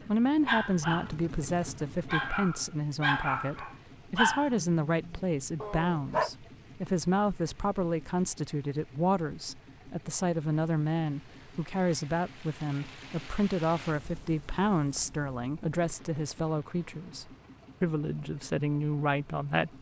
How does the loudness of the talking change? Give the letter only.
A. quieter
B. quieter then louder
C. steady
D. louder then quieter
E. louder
C.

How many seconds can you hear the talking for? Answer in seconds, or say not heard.
20 s.